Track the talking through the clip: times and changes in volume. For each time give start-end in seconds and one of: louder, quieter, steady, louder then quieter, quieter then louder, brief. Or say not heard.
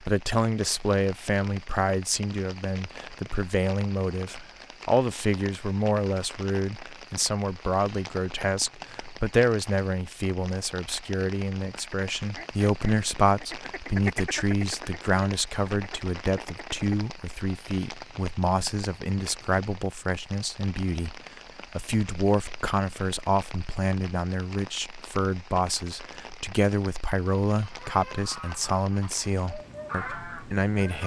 0.0-31.0 steady.